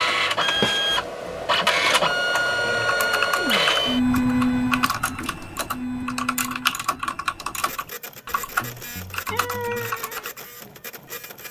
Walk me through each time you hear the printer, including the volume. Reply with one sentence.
You can hear the printer from 0.0 to 11.4 s, getting quieter.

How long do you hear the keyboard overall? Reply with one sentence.
The keyboard can be heard for 8 seconds in total.